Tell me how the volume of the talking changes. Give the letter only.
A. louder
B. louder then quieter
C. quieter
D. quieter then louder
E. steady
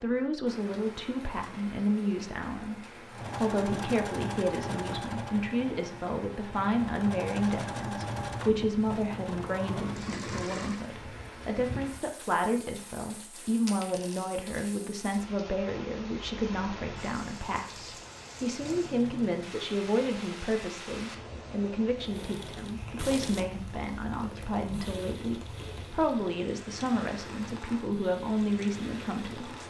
E.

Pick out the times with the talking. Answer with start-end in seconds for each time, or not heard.
0.0-29.6.